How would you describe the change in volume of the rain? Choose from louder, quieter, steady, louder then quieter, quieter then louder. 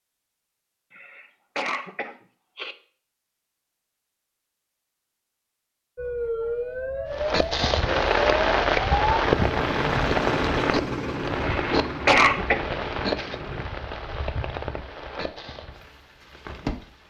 quieter.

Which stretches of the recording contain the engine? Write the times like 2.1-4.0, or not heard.
9.2-13.7.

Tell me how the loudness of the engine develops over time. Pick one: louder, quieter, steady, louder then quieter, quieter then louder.
quieter.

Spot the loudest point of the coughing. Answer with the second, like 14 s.
12 s.